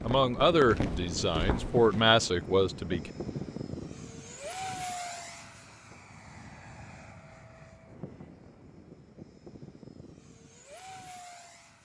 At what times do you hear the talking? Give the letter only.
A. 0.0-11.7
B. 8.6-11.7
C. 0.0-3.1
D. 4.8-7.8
C.